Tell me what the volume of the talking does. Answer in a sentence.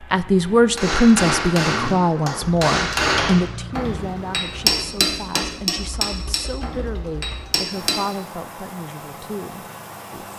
The volume of the talking goes down.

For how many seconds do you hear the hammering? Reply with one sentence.
The hammering can be heard for 7 seconds in total.